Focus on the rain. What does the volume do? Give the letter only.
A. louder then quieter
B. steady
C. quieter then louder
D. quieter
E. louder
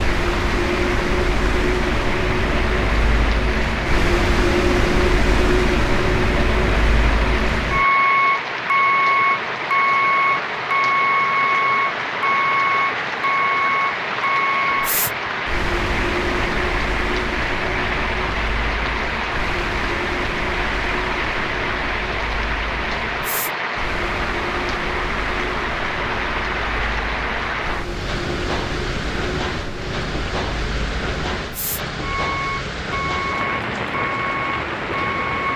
B.